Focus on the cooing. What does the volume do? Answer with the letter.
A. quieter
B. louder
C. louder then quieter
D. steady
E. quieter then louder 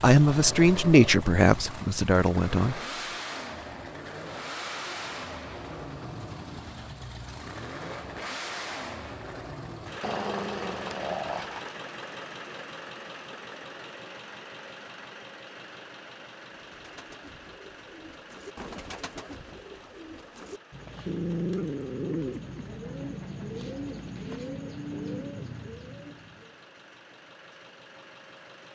B.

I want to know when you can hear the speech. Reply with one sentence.
You can hear the speech from 0.0 to 2.8 s.